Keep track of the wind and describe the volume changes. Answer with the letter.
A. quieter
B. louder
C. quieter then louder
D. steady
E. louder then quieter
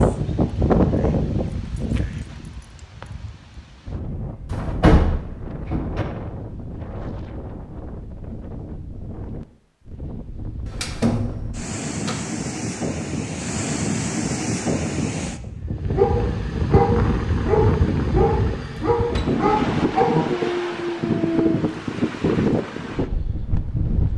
C.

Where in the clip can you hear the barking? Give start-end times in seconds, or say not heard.
15.8-21.8.